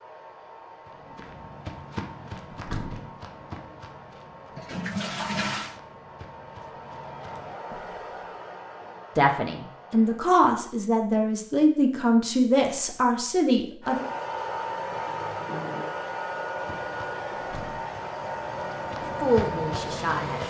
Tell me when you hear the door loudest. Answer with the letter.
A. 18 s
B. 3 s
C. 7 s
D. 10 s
B.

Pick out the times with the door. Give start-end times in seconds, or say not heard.
2.5-3.1, 17.4-17.9.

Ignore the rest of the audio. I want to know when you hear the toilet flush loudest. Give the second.
5 s.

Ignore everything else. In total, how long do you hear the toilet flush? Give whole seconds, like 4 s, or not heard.
2 s.